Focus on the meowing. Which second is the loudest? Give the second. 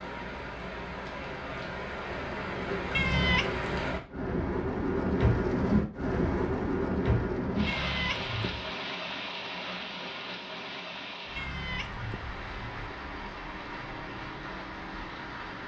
3 s.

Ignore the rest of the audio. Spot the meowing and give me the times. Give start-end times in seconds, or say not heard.
2.9-3.5, 7.7-8.7, 11.3-12.8.